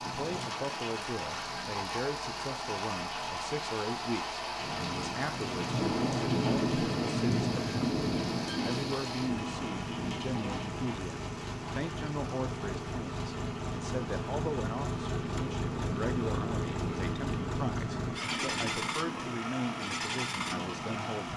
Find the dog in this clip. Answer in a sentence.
The dog can't be heard in this clip.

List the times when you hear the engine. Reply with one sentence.
You can hear the engine from 0.0 to 21.3 s.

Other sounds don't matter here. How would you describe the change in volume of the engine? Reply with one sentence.
The loudness of the engine goes up.